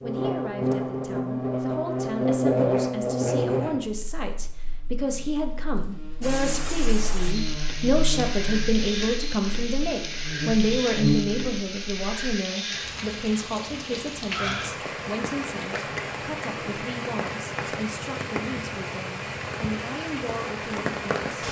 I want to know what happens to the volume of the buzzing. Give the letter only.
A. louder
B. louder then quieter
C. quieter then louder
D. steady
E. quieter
C.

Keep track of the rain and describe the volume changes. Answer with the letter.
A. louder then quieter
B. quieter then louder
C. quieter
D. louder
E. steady
E.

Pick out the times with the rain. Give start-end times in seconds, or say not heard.
6.2-21.4.